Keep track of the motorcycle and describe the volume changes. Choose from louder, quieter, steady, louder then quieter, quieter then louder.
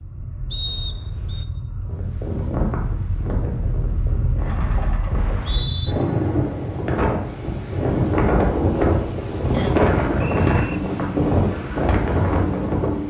louder.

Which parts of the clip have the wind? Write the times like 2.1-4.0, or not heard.
1.9-13.0.